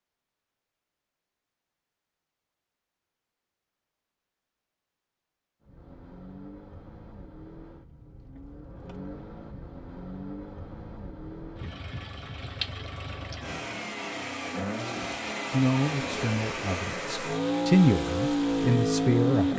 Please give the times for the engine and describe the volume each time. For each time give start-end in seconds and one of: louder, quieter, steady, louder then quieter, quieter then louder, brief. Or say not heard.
5.6-19.5 louder.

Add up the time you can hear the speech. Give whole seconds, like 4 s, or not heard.
4 s.